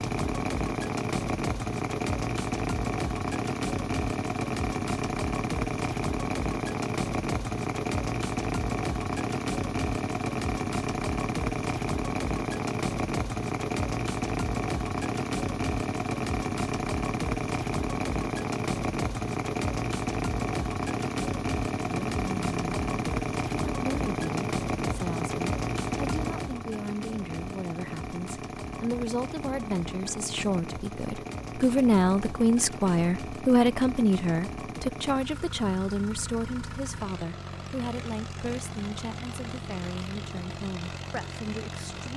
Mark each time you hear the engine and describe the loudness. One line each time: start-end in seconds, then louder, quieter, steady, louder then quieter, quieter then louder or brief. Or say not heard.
0.0-42.1 quieter.